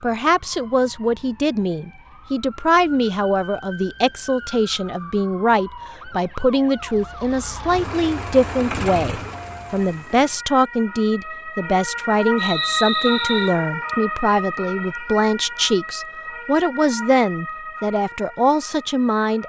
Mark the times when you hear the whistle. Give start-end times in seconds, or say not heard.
12.3-13.5.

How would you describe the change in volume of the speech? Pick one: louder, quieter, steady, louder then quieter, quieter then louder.
steady.